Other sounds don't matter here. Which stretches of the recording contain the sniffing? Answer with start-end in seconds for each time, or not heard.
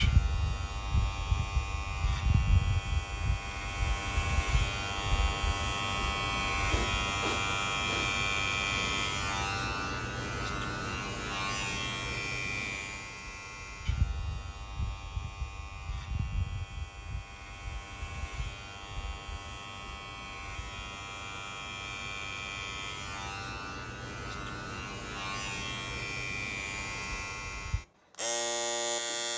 6.6-9.2.